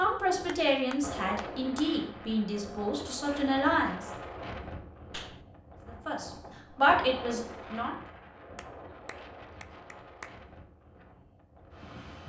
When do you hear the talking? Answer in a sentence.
The talking can be heard from 0.0 to 4.1 s and from 5.8 to 8.0 s.